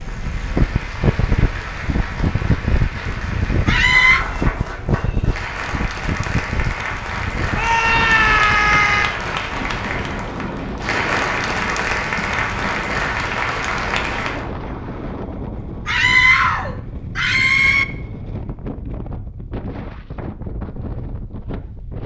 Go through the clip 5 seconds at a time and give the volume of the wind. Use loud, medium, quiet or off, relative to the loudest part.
loud, medium, medium, medium, medium.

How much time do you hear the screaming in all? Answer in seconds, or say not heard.
4 s.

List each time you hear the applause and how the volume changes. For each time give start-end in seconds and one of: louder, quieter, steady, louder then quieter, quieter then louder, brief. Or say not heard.
0.0-14.4 louder.